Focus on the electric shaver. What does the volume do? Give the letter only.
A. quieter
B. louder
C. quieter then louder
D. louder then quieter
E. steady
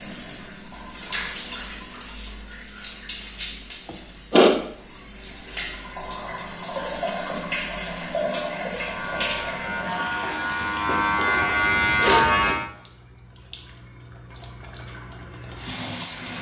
B.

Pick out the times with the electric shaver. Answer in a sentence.
The electric shaver can be heard from 8.7 to 12.7 s.